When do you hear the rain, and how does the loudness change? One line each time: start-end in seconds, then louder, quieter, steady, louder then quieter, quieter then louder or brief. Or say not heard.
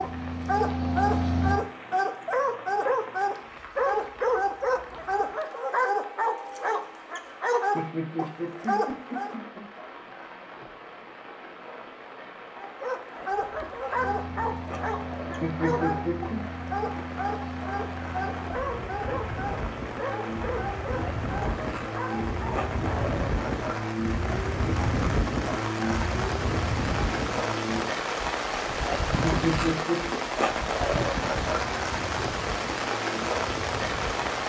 0.0-34.4 louder.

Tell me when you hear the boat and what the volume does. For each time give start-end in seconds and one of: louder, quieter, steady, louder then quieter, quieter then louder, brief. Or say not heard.
0.0-1.6 brief
13.9-34.4 louder then quieter.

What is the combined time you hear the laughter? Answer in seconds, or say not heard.
4 s.